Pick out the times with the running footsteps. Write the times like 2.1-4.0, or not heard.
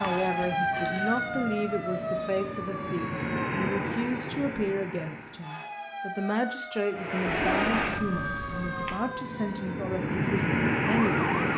not heard.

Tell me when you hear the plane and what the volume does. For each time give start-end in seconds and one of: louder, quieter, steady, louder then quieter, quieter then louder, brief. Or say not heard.
0.0-5.6 louder then quieter
6.9-11.5 quieter then louder.